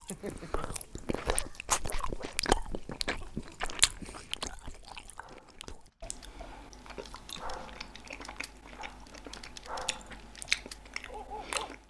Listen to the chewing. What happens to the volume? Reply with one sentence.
The loudness of the chewing goes down, then up.